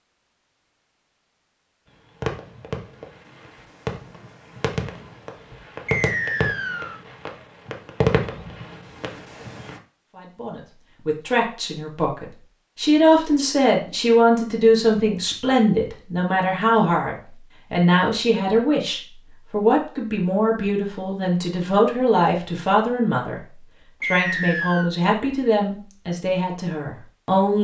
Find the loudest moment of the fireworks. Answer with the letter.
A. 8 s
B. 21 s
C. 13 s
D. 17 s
A.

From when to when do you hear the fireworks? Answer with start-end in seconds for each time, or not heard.
2.2-9.8.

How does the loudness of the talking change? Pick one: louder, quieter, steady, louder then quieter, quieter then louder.
steady.